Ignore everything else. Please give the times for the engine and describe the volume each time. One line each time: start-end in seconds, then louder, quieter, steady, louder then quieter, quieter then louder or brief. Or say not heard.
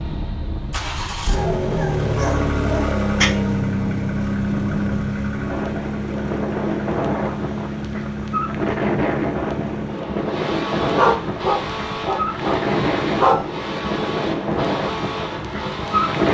0.0-16.2 quieter.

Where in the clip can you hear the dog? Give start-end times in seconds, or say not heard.
1.2-3.2, 10.9-13.4.